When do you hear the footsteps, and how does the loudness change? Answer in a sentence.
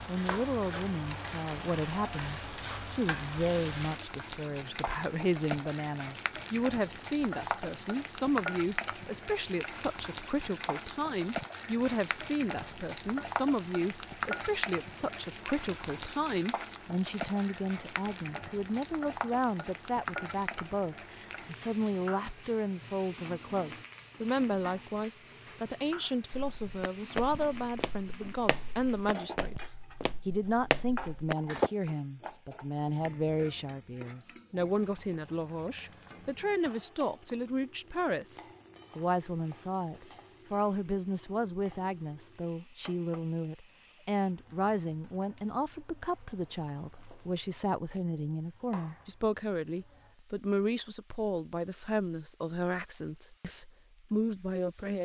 You can hear the footsteps from 26.3 to 31.7 s, getting quieter then louder.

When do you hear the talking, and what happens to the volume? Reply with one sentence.
You can hear the talking from 0.1 to 55.0 s, at a steady volume.